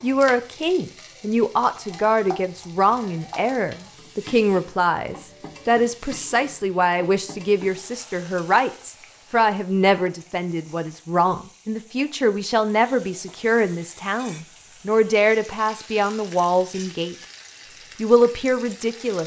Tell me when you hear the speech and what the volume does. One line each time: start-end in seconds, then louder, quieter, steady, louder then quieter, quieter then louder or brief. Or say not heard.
0.0-17.1 steady
18.0-19.2 brief.